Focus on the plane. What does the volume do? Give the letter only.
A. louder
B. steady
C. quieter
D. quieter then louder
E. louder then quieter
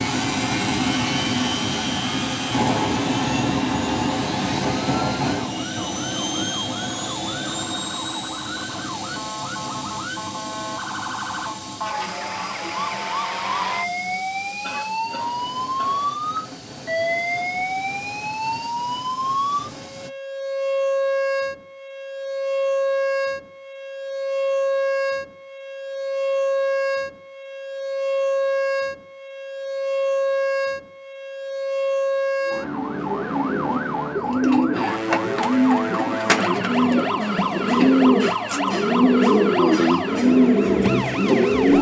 C.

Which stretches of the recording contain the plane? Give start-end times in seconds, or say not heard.
0.0-20.1.